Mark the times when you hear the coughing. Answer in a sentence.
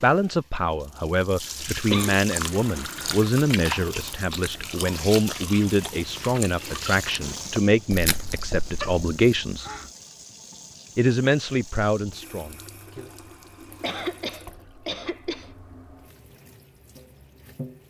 The coughing can be heard from 0.6 to 2.2 s, from 8.7 to 9.9 s and from 13.8 to 15.5 s.